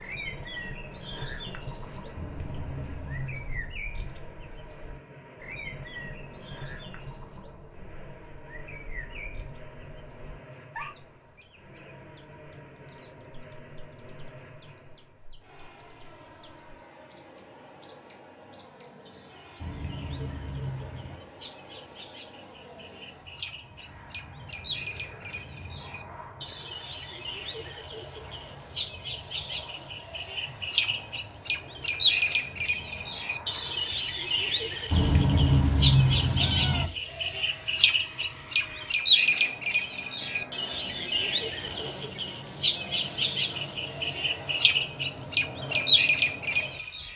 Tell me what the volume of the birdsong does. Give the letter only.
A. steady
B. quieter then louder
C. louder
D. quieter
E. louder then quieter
B.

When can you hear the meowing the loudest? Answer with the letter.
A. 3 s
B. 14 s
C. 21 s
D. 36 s
D.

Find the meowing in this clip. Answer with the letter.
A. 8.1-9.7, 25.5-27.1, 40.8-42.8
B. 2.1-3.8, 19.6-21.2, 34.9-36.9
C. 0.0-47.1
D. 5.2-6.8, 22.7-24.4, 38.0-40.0
B.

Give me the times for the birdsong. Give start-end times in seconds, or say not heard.
0.0-47.1.